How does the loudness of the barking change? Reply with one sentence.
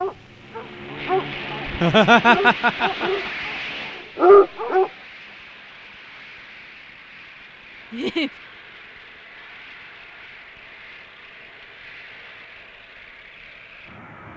The loudness of the barking goes down, then up.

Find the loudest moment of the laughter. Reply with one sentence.
The loudest moment of the laughter is at 2 seconds.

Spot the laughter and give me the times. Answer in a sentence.
The laughter can be heard from 1.6 to 3.3 s and from 7.9 to 8.3 s.